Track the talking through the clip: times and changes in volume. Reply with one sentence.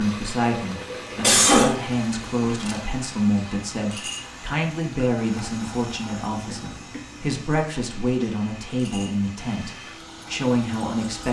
You can hear the talking from 0.0 to 11.2 s, at a steady volume.